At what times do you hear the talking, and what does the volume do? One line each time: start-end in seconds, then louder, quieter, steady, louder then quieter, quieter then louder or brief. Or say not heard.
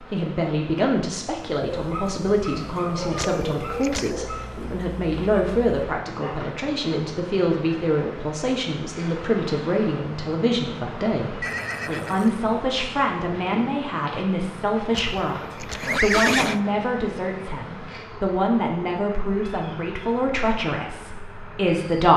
0.0-22.1 steady.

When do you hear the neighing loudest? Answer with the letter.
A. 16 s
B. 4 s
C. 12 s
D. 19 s
A.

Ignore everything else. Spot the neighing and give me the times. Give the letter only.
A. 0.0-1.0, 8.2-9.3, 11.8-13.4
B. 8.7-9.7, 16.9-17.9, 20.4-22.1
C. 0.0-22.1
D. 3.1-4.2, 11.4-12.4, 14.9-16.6
D.